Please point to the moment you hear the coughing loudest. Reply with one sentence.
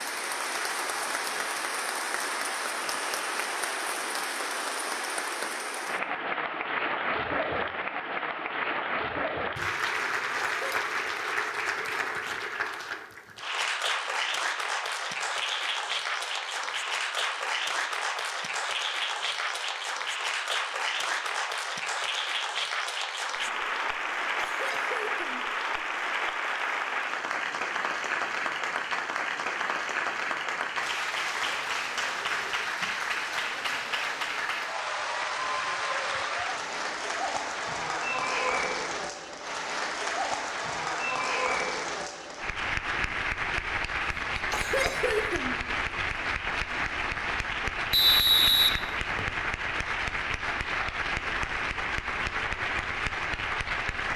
The loudest moment of the coughing is at 45 seconds.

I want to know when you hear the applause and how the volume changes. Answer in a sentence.
You can hear the applause from 0.0 to 54.1 s, at a steady volume.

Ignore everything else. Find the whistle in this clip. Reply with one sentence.
You can hear the whistle from 47.9 to 49.4 s.